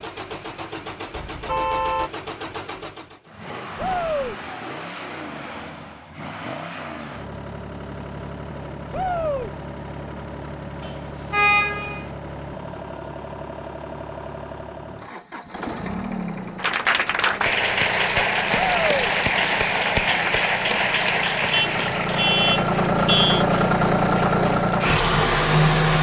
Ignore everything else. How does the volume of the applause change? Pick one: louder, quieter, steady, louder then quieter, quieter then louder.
quieter.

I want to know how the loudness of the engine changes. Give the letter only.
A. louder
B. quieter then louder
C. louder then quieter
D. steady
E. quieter
A.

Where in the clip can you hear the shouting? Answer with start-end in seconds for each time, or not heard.
3.8-4.3, 8.9-9.5, 18.6-19.1.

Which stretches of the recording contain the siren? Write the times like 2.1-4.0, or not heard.
not heard.